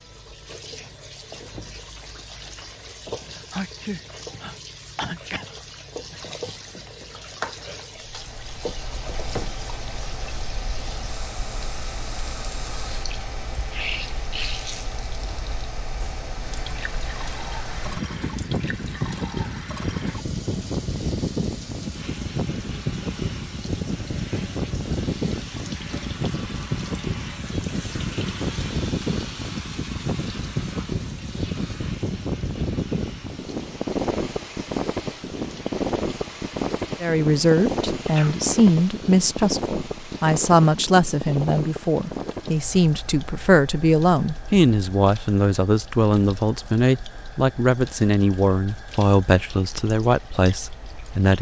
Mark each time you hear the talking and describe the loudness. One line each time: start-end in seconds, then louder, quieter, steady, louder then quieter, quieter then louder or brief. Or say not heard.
37.0-51.3 steady.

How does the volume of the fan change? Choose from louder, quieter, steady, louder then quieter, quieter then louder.
louder then quieter.